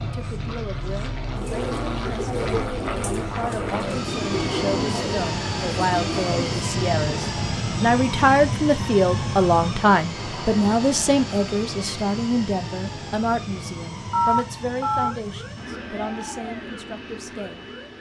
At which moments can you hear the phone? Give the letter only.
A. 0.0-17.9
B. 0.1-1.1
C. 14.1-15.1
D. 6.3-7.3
C.